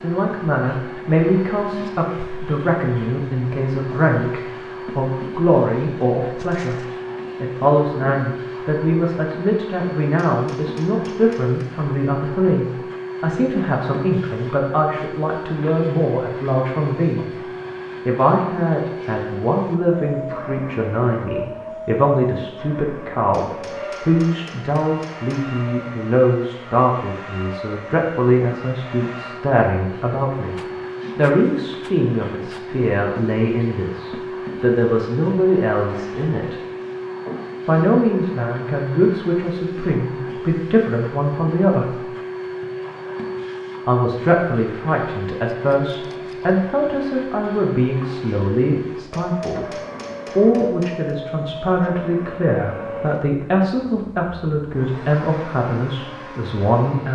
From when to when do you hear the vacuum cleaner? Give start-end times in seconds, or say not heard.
0.0-57.1.